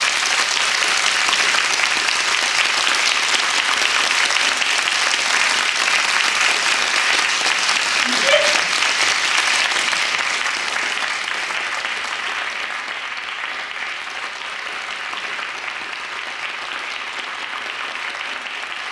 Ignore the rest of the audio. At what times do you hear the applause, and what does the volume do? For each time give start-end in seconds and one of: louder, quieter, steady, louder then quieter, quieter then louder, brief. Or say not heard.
0.0-18.8 quieter.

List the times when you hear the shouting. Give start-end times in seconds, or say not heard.
8.1-8.6.